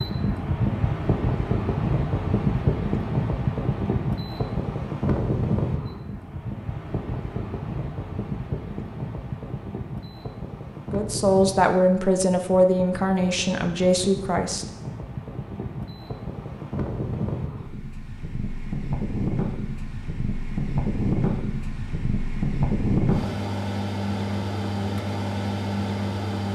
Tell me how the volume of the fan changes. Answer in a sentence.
The loudness of the fan goes down, then up.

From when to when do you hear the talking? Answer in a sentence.
You can hear the talking from 10.9 to 14.7 s.